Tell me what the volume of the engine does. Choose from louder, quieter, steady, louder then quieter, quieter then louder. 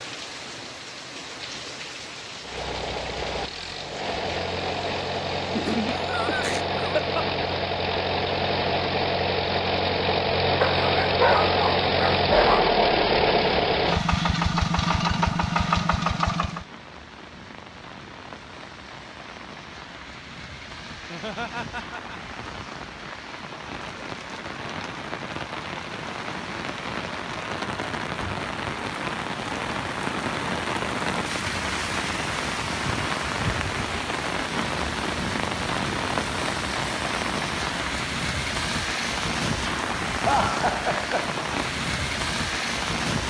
louder.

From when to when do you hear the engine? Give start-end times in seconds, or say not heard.
2.4-16.6.